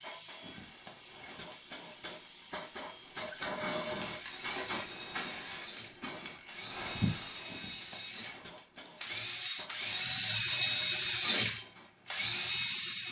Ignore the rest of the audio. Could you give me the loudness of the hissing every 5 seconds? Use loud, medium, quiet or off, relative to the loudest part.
loud, loud, quiet.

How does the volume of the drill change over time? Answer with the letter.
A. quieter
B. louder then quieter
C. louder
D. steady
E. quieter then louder
C.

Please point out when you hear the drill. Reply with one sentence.
You can hear the drill from 0.0 to 13.0 s.